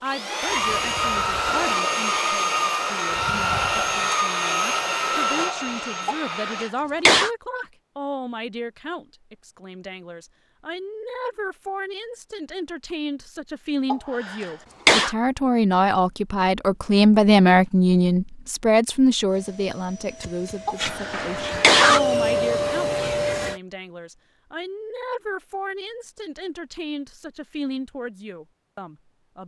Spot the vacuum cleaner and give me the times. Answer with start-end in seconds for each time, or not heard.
0.0-6.7, 19.2-23.6.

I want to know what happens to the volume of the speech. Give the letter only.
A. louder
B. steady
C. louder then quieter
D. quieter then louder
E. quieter
C.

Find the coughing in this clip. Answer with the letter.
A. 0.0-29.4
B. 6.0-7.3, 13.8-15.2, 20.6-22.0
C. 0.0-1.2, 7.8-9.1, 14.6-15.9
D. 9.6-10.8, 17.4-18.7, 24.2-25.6
B.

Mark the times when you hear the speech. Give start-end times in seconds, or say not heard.
0.0-29.4.